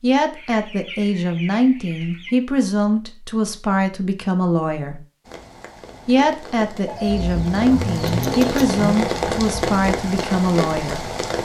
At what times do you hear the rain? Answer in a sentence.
You can hear the rain from 5.2 to 11.4 s.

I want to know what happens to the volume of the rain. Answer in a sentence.
The volume of the rain goes up.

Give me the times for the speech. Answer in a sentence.
You can hear the speech from 0.0 to 5.0 s and from 6.0 to 11.1 s.